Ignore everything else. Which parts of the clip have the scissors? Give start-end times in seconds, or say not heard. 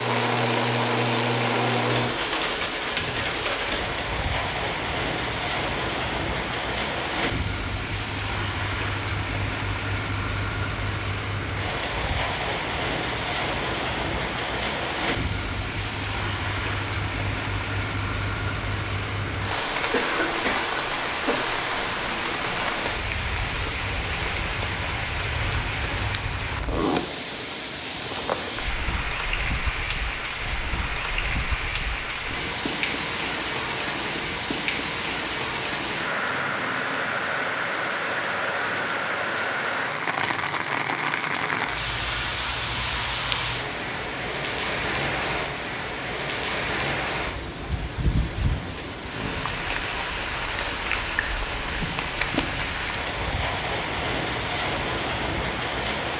not heard.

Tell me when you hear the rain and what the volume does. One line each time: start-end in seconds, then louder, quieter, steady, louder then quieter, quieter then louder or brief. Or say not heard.
0.0-56.1 steady.